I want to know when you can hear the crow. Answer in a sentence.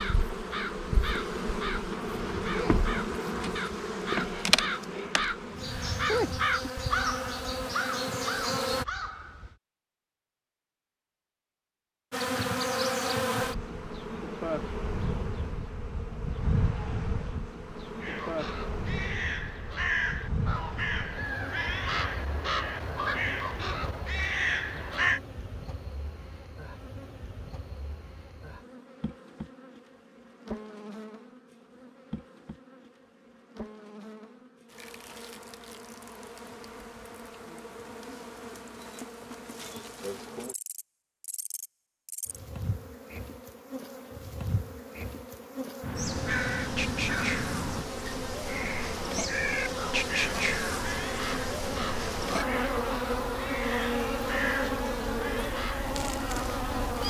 The crow can be heard from 0.0 to 9.6 s, from 18.0 to 25.2 s and from 45.8 to 56.0 s.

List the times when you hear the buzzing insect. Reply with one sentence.
The buzzing insect can be heard from 0.0 to 8.8 s and from 12.1 to 57.0 s.